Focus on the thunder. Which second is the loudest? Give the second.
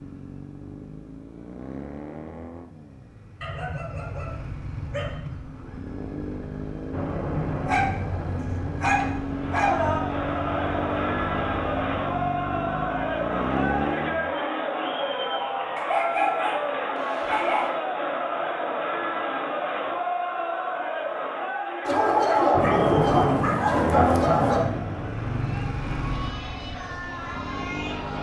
23 s.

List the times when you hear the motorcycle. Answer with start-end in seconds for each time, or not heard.
0.0-14.3, 23.6-28.1.